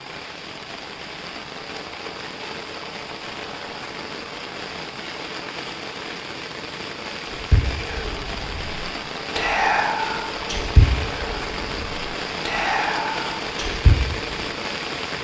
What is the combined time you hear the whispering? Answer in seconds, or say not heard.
7 s.